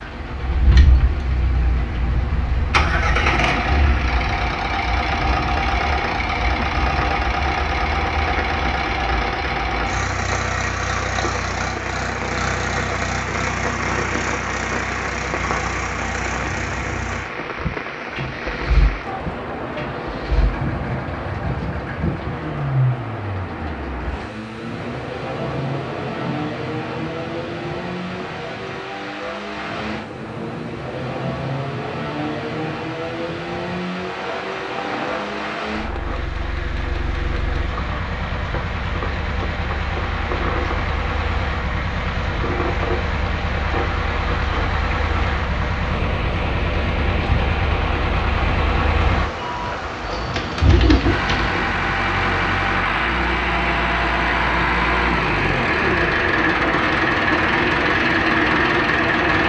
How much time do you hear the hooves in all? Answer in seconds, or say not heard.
2 s.